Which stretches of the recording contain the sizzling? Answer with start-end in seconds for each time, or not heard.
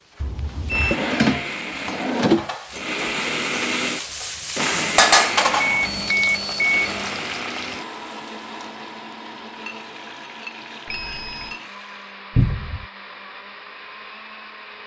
0.0-12.2.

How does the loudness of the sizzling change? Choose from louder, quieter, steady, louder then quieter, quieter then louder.
louder then quieter.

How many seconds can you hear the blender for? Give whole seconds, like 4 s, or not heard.
15 s.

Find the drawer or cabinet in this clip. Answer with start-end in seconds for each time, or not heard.
0.9-2.5, 12.3-12.8.